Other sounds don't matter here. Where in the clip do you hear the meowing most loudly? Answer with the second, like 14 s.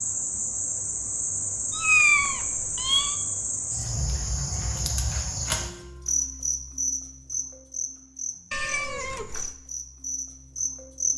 2 s.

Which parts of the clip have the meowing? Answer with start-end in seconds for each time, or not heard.
1.7-3.1, 8.5-9.5.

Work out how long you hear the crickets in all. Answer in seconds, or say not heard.
11 s.